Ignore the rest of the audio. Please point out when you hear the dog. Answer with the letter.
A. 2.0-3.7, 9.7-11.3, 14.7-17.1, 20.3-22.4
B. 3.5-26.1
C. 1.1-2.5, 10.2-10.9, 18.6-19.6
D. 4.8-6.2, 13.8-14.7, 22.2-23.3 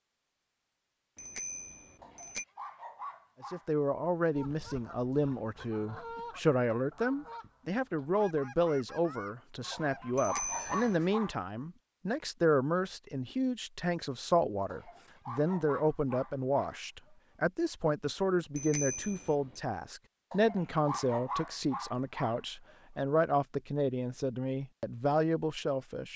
A.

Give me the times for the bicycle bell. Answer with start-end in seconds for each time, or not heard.
1.1-2.5, 10.2-10.9, 18.6-19.6.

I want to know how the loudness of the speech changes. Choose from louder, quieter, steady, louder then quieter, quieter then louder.
steady.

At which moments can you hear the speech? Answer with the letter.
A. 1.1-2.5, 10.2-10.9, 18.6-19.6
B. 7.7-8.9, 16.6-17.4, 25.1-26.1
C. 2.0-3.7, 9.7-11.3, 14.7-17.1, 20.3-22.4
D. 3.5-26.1
D.